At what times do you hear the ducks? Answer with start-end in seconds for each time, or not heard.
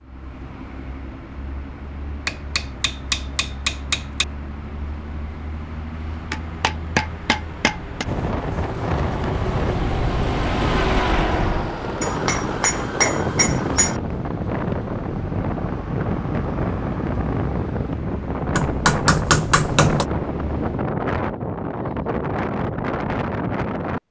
not heard.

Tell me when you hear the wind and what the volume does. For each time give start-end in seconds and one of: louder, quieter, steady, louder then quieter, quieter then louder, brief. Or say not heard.
8.1-24.0 steady.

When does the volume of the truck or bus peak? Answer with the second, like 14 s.
11 s.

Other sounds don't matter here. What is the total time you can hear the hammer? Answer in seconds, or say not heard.
7 s.